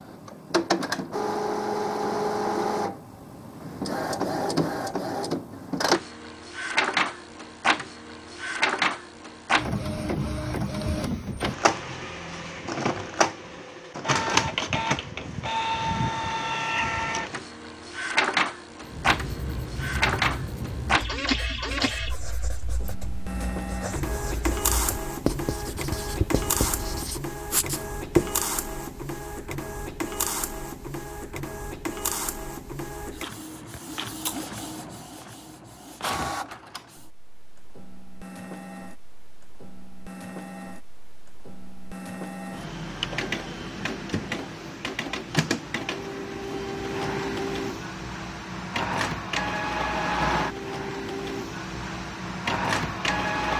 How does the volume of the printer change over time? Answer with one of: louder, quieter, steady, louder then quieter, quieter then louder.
quieter then louder.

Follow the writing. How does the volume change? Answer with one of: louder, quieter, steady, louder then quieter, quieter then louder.
quieter then louder.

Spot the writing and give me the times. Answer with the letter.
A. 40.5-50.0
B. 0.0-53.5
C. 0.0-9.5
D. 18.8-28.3
D.